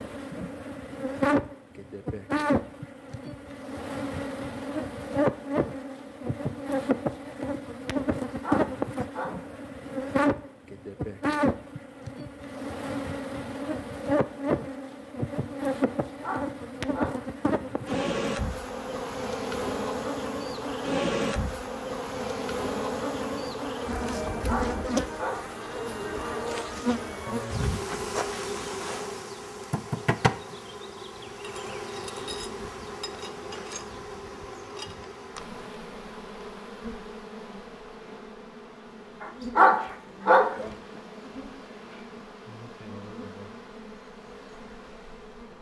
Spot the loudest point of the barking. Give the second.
40 s.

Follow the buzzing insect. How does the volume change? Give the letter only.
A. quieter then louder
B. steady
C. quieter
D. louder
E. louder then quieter
C.